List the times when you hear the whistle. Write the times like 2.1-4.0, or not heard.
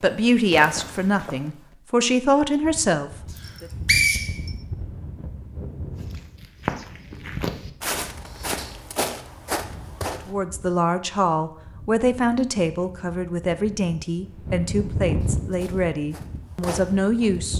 3.4-4.5.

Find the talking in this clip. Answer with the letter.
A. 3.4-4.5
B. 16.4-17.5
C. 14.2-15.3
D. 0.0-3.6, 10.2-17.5
D.